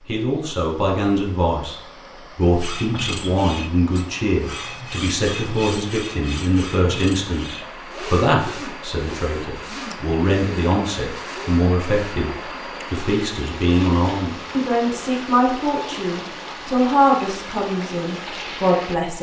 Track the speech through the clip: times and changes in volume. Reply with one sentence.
The speech can be heard from 0.1 to 19.1 s, at a steady volume.